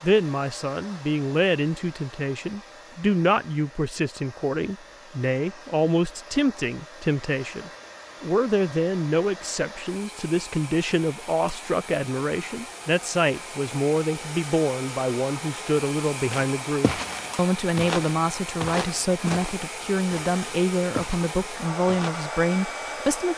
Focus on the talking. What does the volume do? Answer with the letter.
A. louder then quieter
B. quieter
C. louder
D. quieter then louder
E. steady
E.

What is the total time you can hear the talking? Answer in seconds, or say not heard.
23 s.